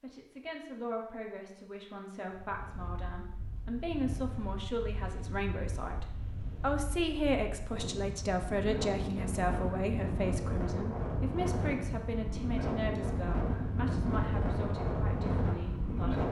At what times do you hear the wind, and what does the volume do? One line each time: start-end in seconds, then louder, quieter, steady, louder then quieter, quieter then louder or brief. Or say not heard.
2.2-16.2 louder.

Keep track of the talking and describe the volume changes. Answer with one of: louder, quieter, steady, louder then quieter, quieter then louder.
louder then quieter.